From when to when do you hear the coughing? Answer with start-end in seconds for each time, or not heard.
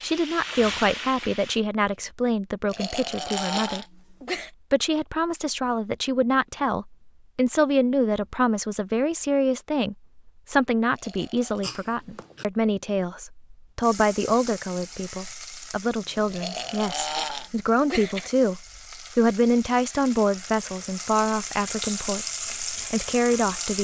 11.6-12.4.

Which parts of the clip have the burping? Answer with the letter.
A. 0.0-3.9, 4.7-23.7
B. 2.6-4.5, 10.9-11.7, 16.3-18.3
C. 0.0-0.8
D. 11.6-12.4
B.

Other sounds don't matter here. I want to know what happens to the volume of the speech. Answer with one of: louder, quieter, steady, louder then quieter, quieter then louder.
steady.